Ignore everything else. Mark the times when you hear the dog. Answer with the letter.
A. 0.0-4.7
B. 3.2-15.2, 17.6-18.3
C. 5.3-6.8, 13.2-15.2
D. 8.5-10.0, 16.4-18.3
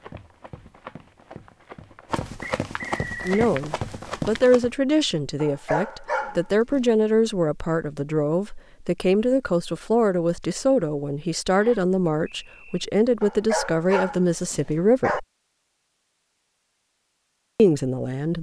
C.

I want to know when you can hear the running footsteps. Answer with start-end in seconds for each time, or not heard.
0.0-4.7.